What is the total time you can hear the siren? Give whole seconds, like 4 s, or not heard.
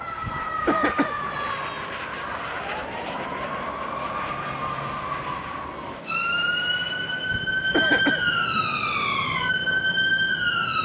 11 s.